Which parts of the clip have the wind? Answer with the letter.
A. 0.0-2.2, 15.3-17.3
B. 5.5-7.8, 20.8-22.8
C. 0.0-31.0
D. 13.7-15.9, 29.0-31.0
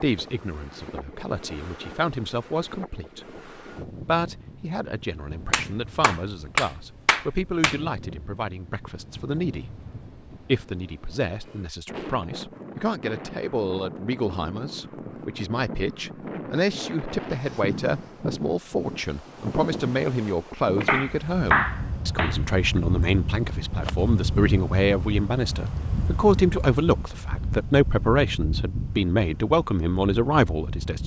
C.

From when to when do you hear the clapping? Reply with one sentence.
The clapping can be heard from 5.5 to 7.8 s and from 20.8 to 22.8 s.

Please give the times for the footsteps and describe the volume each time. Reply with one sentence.
The footsteps can't be heard in this clip.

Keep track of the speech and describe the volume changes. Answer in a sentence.
The loudness of the speech goes up.